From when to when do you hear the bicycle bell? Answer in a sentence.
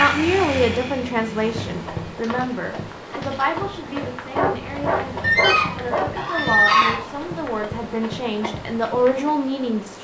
You can't hear the bicycle bell here.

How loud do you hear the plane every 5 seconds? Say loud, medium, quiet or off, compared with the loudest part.
loud, off.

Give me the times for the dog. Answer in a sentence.
The dog can be heard from 4.3 to 6.1 s.